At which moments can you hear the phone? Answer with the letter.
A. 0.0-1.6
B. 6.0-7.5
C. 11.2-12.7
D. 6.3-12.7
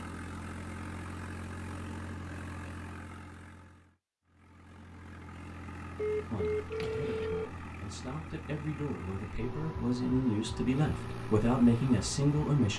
B.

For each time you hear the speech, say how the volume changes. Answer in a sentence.
You can hear the speech from 6.3 to 12.7 s, getting louder.